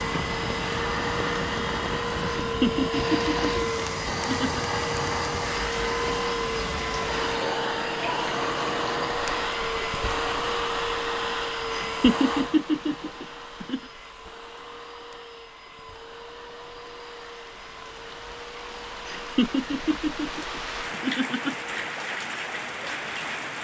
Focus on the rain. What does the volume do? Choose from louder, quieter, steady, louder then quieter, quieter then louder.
quieter then louder.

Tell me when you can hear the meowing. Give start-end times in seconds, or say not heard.
not heard.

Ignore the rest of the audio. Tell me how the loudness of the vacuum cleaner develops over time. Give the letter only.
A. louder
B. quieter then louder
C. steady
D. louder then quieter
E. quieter
E.